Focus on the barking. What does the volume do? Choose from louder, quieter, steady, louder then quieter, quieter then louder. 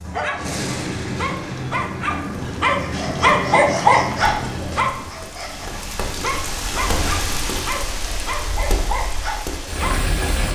louder then quieter.